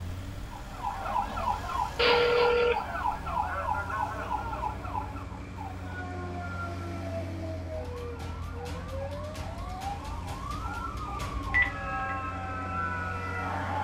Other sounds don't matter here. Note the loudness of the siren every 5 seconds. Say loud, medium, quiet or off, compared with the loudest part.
loud, medium, loud.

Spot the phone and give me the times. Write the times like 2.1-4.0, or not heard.
1.9-2.8, 11.5-12.2.